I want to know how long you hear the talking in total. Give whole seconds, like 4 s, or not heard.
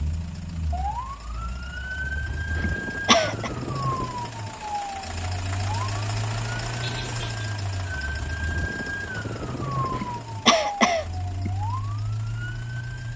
not heard.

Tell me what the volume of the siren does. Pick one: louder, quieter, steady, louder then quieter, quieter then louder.
steady.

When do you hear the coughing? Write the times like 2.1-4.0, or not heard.
2.5-3.5, 9.9-11.5.